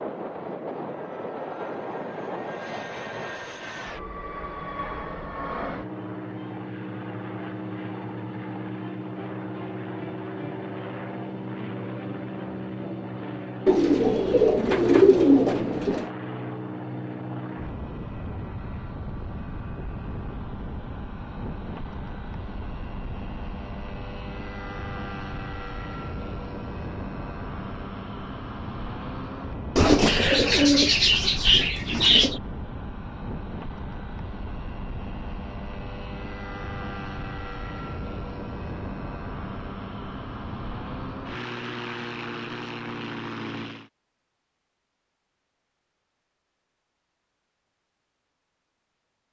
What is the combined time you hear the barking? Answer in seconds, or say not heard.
not heard.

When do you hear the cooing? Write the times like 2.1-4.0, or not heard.
13.7-16.1, 29.8-32.4.